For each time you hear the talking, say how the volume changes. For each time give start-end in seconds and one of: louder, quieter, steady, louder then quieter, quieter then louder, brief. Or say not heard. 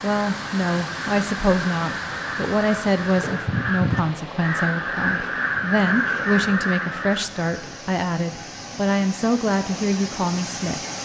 0.0-10.8 steady.